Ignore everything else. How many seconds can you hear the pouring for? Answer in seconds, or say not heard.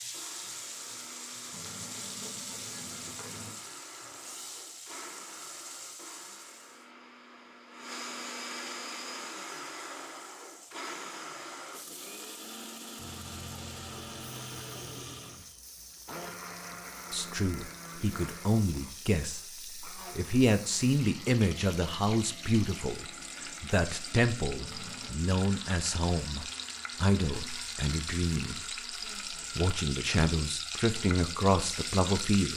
5 s.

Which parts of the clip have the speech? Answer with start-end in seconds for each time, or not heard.
17.1-28.6, 29.6-32.5.